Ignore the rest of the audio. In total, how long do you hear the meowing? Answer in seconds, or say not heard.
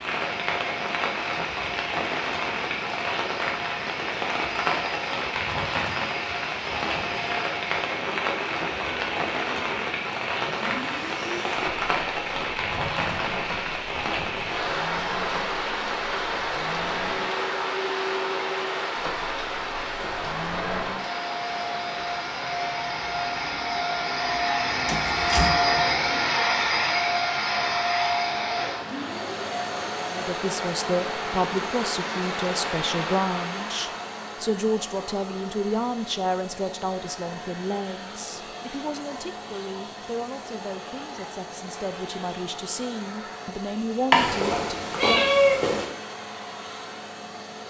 2 s.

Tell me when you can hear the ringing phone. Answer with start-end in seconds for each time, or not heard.
not heard.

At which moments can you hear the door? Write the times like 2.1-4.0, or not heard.
24.9-25.6.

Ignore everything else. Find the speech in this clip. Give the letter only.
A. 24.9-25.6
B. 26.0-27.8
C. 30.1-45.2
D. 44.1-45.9
C.